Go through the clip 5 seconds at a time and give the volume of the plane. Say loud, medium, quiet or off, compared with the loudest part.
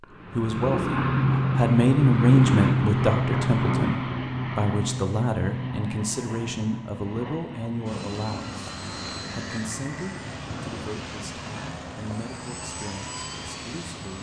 loud, medium, quiet.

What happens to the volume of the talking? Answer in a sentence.
The loudness of the talking goes down.